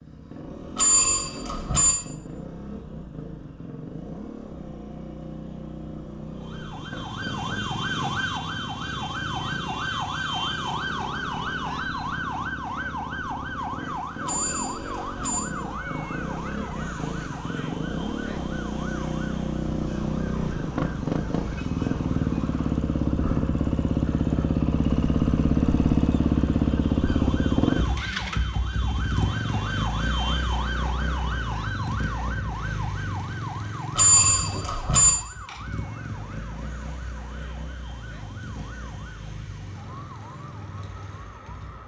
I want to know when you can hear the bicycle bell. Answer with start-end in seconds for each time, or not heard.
0.8-1.9, 14.2-15.4, 34.0-35.1.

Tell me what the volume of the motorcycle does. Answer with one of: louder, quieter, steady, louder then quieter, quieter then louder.
louder then quieter.